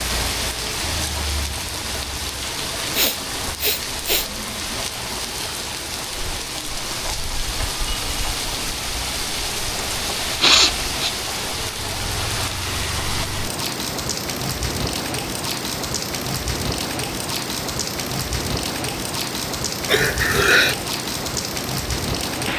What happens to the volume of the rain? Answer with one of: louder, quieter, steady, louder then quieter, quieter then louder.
steady.